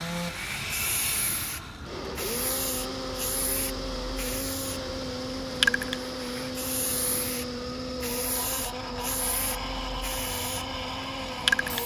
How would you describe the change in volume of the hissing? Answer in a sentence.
The volume of the hissing goes up, then down.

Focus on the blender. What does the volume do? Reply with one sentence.
The loudness of the blender stays about the same.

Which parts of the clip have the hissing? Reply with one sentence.
You can hear the hissing from 0.0 to 11.8 s.